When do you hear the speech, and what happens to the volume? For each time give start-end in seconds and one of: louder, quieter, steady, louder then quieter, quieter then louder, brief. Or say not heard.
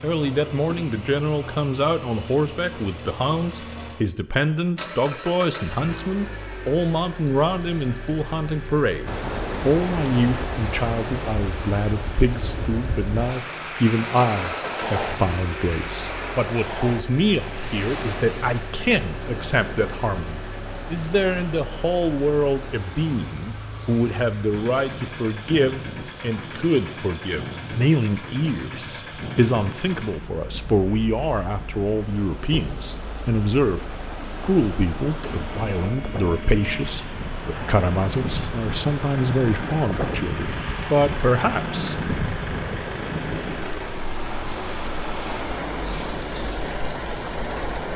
0.0-42.0 steady.